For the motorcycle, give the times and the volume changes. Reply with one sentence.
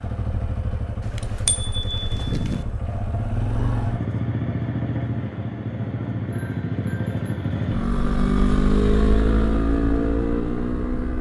You can hear the motorcycle from 0.0 to 11.1 s, getting louder.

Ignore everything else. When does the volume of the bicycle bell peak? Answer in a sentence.
The loudest moment of the bicycle bell is at 2 seconds.